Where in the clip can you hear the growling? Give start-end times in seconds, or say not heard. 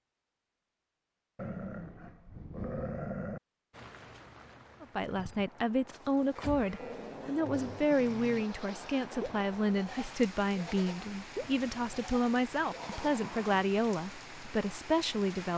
1.4-3.4, 6.8-7.8, 12.7-13.6.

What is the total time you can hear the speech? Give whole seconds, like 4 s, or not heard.
11 s.